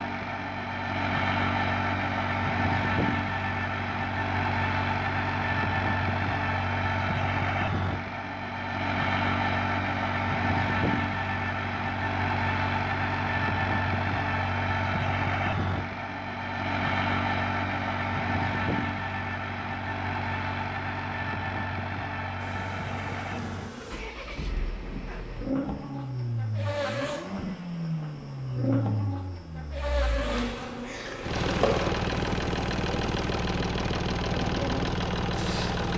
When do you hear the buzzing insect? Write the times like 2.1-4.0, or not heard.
22.4-35.9.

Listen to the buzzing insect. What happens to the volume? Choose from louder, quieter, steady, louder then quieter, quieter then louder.
louder then quieter.